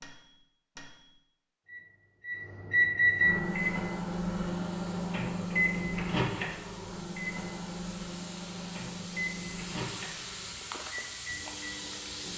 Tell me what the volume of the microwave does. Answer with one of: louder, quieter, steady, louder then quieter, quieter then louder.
louder then quieter.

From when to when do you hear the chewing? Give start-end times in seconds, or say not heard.
10.5-12.3.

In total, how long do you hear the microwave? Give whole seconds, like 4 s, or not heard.
12 s.